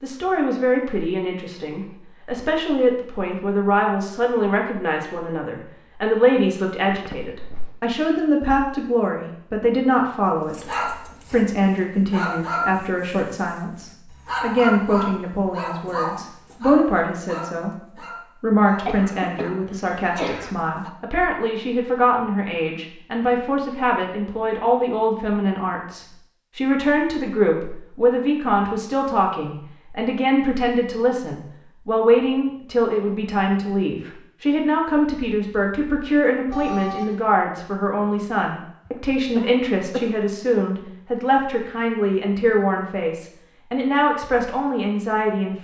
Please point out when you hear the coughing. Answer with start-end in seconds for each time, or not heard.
6.9-7.8, 18.9-20.6, 38.9-40.1.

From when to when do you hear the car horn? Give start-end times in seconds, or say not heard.
36.5-37.1.